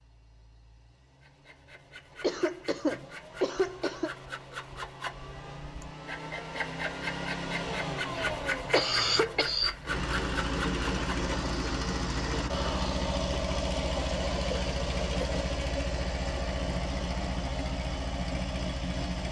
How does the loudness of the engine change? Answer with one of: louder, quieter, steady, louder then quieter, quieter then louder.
louder.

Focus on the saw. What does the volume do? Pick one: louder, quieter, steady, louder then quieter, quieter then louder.
louder.